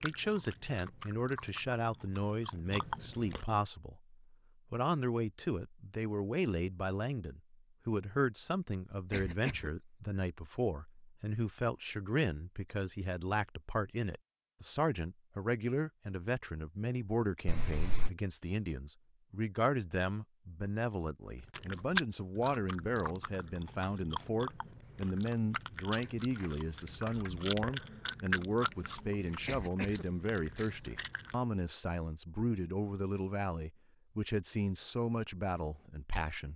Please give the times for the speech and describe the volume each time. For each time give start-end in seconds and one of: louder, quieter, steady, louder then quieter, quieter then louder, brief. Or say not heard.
0.0-36.5 steady.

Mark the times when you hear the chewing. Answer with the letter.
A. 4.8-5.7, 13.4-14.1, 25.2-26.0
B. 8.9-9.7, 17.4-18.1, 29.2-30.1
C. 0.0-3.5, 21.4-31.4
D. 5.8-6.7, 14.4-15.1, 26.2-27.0
C.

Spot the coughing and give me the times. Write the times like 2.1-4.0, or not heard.
8.9-9.7, 17.4-18.1, 29.2-30.1.